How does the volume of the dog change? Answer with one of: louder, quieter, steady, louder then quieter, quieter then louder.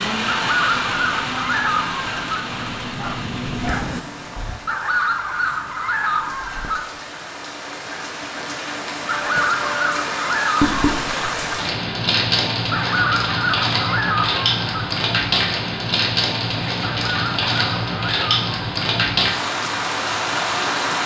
louder.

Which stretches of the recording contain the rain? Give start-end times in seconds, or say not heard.
0.0-21.0.